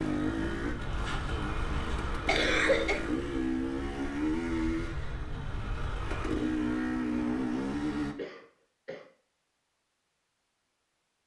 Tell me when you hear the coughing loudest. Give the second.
3 s.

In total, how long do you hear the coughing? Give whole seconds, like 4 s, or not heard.
2 s.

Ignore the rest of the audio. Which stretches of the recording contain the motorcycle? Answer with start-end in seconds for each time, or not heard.
0.0-8.2.